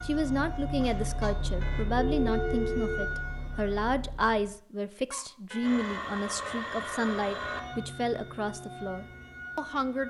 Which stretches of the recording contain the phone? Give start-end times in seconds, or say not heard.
1.9-3.0, 5.6-7.6.